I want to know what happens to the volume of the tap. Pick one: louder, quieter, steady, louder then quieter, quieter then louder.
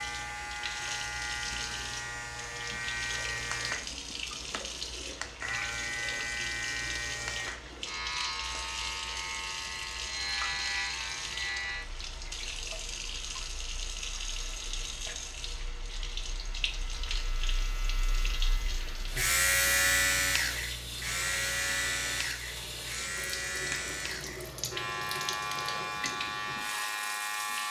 steady.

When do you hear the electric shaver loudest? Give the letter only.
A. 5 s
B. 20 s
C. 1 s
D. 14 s
B.